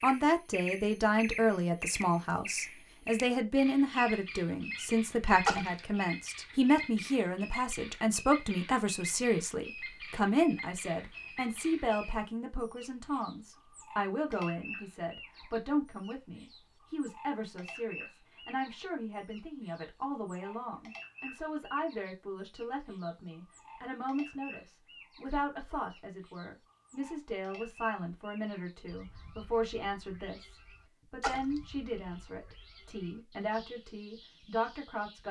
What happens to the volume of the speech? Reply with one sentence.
The loudness of the speech goes down.